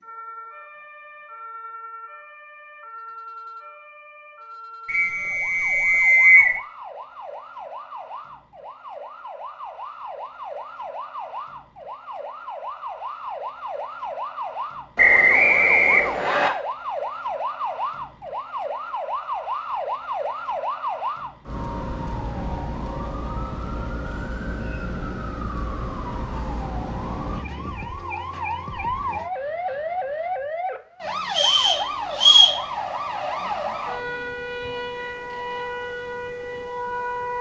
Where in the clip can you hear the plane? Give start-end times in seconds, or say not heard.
not heard.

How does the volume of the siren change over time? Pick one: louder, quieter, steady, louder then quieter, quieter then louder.
louder.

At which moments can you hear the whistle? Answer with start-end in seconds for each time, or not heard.
4.8-6.5, 14.9-16.5, 31.4-32.5.